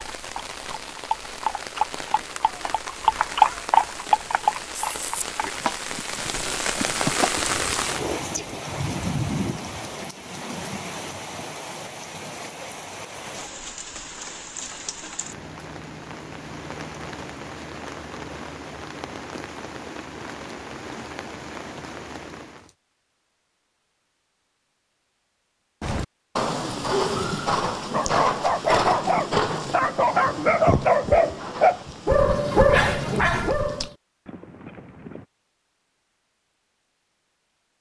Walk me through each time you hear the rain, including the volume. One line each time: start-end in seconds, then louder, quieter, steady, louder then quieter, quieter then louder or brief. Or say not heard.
0.0-22.7 louder then quieter.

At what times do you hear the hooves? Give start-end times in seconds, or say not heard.
0.0-8.6, 25.8-35.2.